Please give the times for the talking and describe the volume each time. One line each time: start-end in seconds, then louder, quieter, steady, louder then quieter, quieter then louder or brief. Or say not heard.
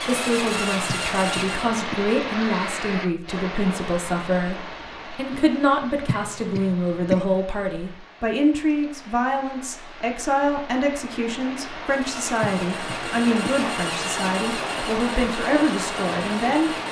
0.1-16.8 steady.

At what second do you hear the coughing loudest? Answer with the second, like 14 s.
7 s.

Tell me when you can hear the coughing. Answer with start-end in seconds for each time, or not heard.
0.8-2.0, 6.0-7.2, 12.4-13.6.